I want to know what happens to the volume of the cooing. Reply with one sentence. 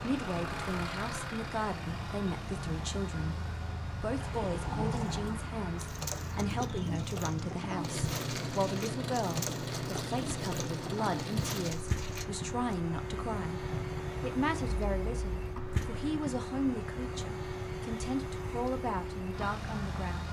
The loudness of the cooing stays about the same.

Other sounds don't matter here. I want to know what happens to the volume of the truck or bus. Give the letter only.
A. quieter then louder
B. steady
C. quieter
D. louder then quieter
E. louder
B.